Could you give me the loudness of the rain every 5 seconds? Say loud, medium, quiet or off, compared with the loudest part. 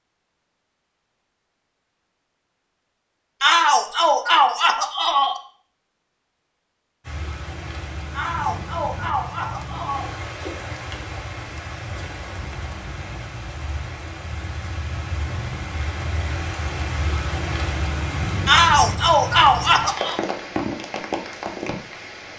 off, medium, medium, loud, loud.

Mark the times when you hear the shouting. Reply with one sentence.
The shouting can be heard from 3.4 to 5.4 s, from 8.1 to 10.1 s and from 18.4 to 20.2 s.